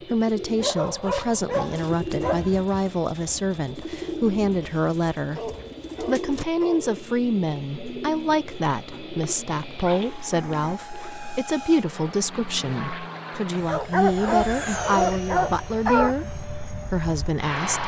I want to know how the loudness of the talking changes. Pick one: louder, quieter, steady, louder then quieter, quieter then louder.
steady.